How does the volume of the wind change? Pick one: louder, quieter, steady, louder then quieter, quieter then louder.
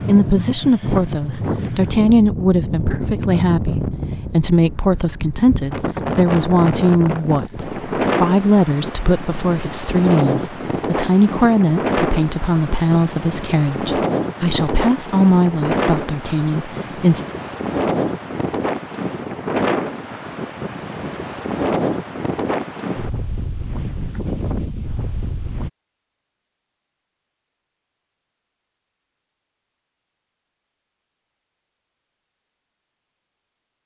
steady.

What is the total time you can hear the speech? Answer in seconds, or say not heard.
17 s.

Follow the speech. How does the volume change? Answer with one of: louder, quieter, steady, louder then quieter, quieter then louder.
steady.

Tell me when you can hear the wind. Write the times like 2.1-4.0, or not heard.
0.0-25.7.